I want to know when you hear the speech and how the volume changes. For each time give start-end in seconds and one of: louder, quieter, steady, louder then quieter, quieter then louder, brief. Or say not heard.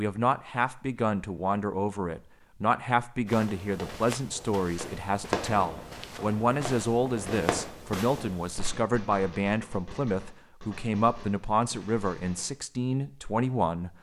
0.0-13.9 steady.